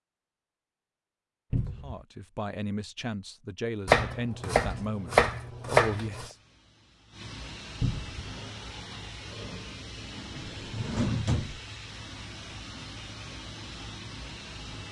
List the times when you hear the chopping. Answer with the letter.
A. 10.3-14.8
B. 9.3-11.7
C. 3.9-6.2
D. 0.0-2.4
C.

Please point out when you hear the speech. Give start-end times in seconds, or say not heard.
1.8-6.3.